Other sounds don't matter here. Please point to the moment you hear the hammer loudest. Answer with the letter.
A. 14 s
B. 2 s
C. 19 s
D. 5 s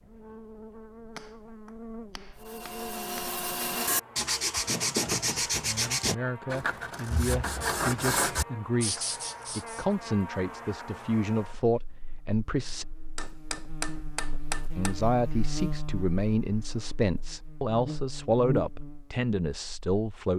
A.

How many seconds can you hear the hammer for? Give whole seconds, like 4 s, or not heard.
4 s.